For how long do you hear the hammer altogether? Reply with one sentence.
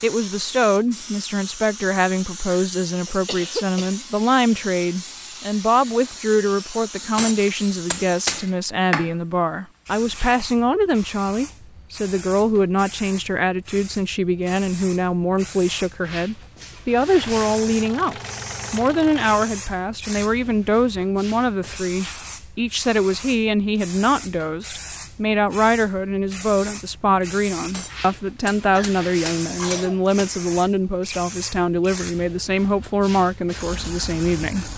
You can hear the hammer for 4 seconds altogether.